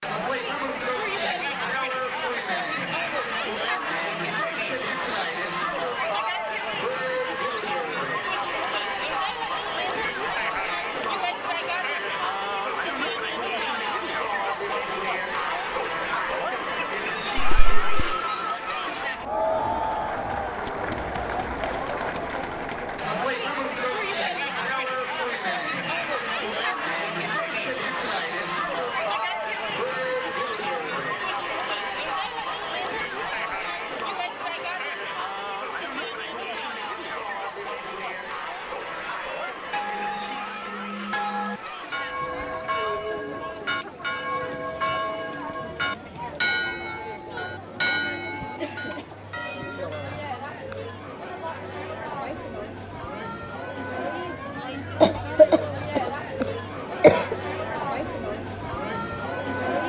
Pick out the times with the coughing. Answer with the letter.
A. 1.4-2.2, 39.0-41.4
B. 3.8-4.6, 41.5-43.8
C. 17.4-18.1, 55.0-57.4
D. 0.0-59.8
C.